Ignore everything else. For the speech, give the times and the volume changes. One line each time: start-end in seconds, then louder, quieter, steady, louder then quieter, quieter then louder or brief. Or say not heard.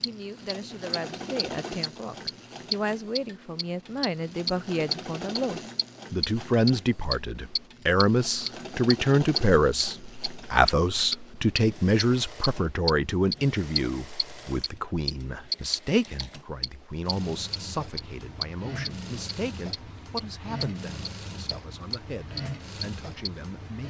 0.0-23.8 louder then quieter.